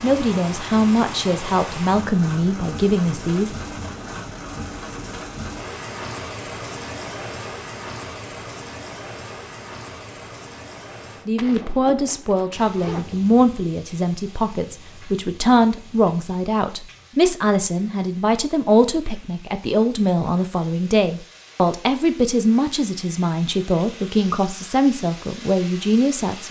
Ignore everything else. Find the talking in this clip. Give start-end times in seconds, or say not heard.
0.0-3.5, 11.2-26.4.